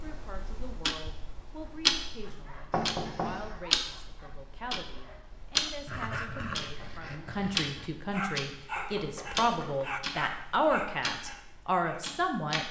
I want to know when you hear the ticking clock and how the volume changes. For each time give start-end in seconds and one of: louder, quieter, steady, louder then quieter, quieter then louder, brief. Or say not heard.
0.0-12.6 quieter.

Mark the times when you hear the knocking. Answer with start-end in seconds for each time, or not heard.
2.7-3.5, 8.8-9.8.